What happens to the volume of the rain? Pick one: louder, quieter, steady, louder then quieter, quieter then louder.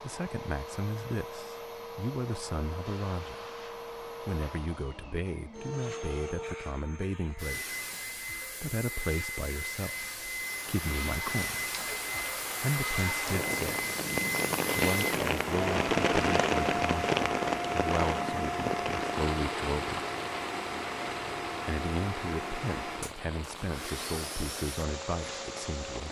louder then quieter.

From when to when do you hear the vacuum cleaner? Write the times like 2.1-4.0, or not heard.
0.0-26.0.